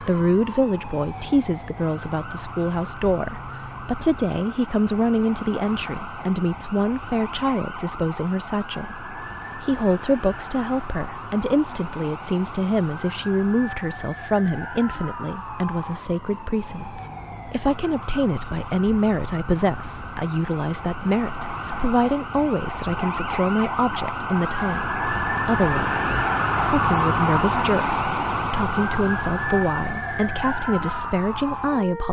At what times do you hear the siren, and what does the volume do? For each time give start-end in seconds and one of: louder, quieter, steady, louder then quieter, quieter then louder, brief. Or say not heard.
0.0-32.0 louder.